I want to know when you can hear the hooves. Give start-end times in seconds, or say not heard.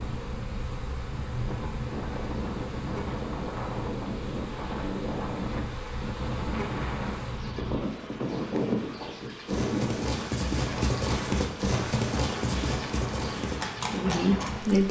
7.4-14.5.